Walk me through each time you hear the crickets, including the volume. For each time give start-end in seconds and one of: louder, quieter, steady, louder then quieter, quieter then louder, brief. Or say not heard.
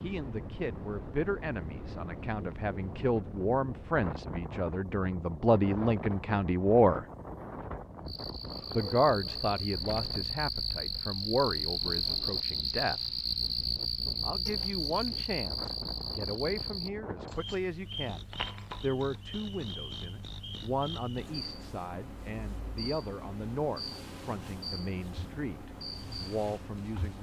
8.1-27.1 quieter.